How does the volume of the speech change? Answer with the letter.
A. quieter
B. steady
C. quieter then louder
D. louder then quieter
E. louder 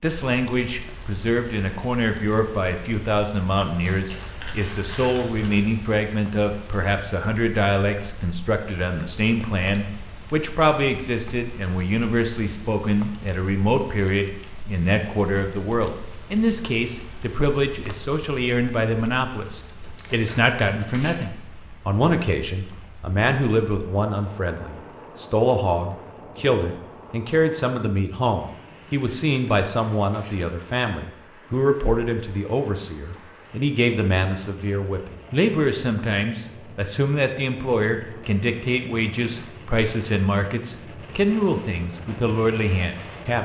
B.